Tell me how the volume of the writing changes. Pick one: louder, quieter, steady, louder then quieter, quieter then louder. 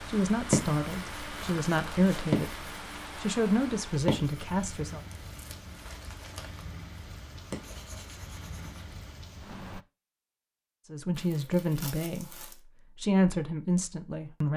quieter then louder.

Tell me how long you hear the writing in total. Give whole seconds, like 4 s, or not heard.
9 s.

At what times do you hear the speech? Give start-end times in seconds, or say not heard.
0.1-5.0, 10.9-12.3, 12.9-14.5.